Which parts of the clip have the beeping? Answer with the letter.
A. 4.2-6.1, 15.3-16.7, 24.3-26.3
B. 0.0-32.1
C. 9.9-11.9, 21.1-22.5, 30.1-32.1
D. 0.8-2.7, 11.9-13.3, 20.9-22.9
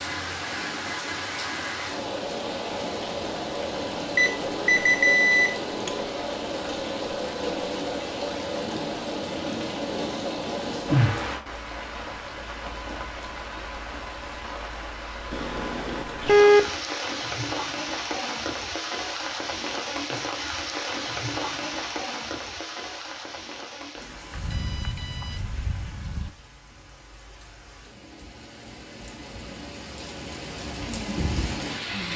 A.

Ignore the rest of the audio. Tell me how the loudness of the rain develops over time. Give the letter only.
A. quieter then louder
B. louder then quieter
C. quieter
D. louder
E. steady
C.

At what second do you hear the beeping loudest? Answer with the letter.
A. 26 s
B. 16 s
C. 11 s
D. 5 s
B.